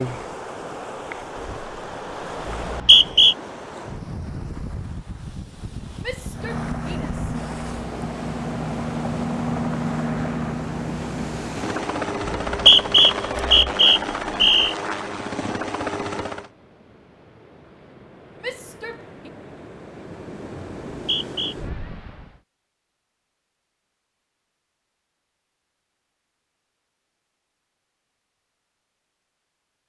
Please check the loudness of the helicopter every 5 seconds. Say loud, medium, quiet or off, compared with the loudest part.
off, loud, loud, loud, off, off.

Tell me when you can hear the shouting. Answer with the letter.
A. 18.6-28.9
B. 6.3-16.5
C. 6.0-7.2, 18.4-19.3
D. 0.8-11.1
C.